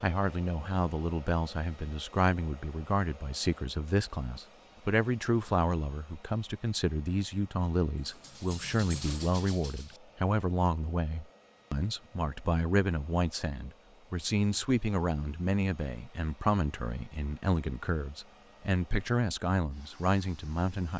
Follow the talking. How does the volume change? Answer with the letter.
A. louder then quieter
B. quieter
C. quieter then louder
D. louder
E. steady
E.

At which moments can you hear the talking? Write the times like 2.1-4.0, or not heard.
0.0-20.9.